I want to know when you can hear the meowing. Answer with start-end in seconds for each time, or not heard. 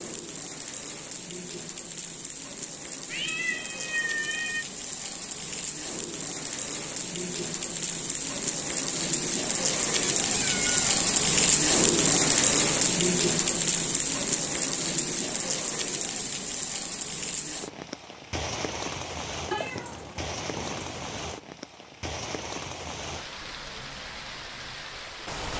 3.1-4.7, 9.8-10.9, 19.5-21.4.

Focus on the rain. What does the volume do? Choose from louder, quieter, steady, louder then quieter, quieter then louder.
louder then quieter.